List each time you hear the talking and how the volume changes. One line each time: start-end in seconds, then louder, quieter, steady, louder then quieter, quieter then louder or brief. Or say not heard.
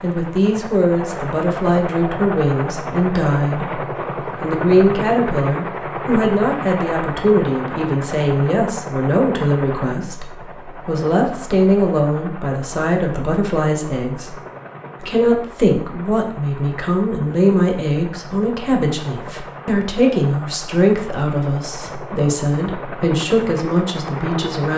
0.0-14.3 steady
15.0-24.7 steady.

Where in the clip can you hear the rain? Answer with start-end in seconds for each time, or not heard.
not heard.